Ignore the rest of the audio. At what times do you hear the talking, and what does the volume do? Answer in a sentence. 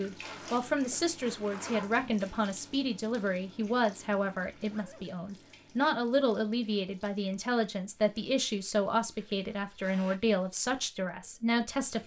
The talking can be heard from 0.0 to 12.0 s, at a steady volume.